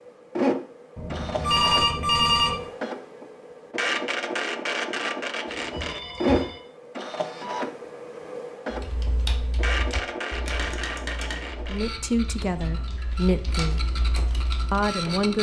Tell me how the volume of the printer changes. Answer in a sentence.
The loudness of the printer goes down.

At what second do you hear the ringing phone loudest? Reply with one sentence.
The loudest moment of the ringing phone is at 2 seconds.